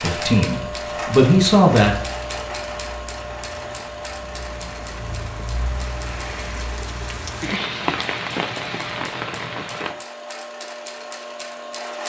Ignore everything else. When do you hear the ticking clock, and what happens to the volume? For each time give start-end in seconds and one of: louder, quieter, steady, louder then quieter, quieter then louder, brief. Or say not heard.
not heard.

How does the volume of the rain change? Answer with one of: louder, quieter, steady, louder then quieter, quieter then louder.
louder.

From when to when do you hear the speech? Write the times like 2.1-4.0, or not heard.
0.0-2.0.